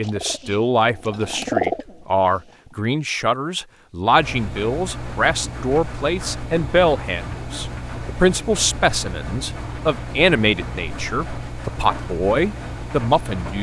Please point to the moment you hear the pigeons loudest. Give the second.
2 s.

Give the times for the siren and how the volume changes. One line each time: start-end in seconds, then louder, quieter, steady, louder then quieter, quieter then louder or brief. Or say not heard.
not heard.